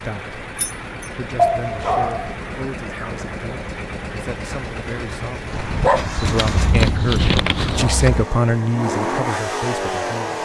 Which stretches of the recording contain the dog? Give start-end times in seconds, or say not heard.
1.4-2.4, 5.5-7.5.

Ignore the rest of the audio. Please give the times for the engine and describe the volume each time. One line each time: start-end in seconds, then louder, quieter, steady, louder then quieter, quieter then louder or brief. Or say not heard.
0.0-10.4 louder.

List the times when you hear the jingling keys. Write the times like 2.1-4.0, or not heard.
0.6-1.1, 6.2-8.2.